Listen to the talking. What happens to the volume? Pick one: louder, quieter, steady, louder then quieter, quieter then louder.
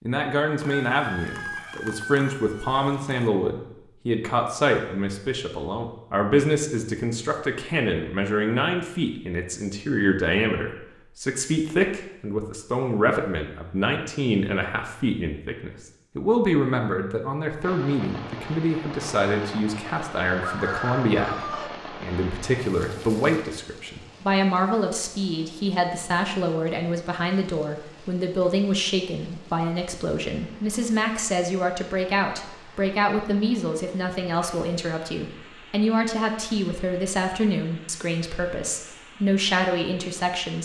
steady.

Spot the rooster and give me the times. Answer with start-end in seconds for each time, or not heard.
0.6-3.3, 20.4-21.8.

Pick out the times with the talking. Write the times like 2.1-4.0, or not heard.
0.0-40.6.